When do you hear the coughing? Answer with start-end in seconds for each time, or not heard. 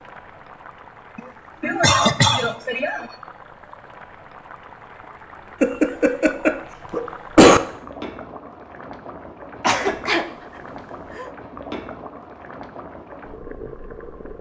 1.1-3.0, 5.6-7.6, 9.6-10.2.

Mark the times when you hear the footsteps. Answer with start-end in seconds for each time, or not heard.
not heard.